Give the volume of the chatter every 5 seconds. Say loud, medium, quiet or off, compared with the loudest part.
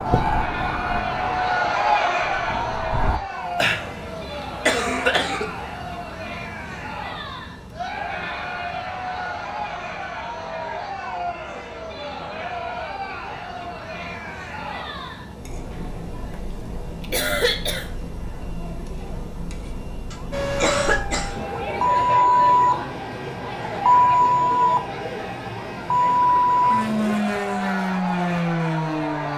loud, medium, medium, quiet, medium, medium.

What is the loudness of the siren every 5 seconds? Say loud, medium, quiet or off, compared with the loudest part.
medium, off, off, off, loud, loud.